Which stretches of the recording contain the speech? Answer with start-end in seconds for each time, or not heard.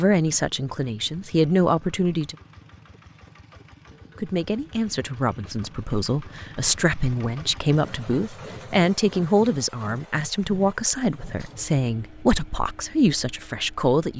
0.0-2.4, 4.2-14.1.